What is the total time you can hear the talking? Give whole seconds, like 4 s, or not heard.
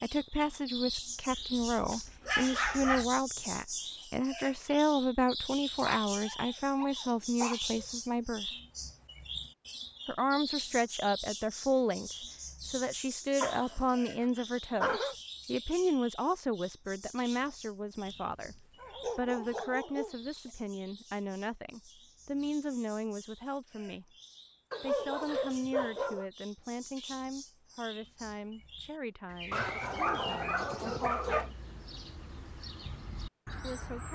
30 s.